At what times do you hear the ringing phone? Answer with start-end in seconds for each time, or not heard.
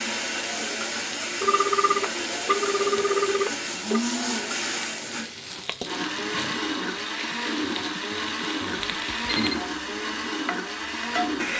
1.4-4.0, 8.8-9.6.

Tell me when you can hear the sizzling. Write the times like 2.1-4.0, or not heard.
0.0-11.4.